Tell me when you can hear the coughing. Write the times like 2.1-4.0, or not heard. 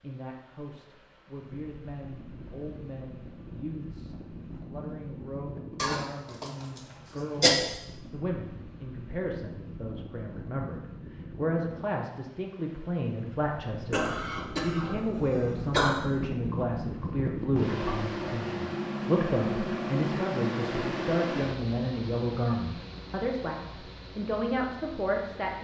5.8-7.5, 13.9-16.0.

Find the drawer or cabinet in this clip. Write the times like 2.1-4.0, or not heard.
not heard.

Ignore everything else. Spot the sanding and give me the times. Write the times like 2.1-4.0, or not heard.
not heard.